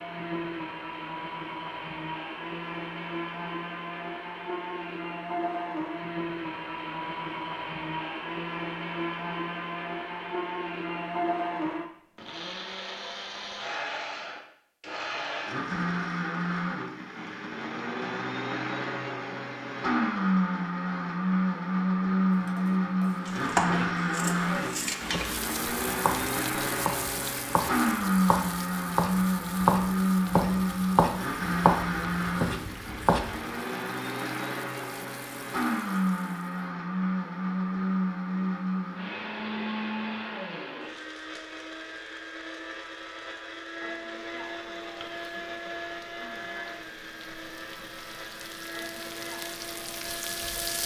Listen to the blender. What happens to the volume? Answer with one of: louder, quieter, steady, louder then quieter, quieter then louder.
louder then quieter.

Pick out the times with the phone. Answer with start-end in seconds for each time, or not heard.
not heard.